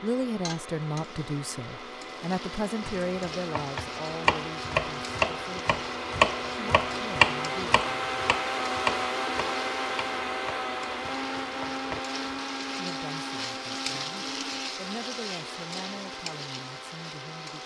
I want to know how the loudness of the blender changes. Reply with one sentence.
The loudness of the blender goes up, then down.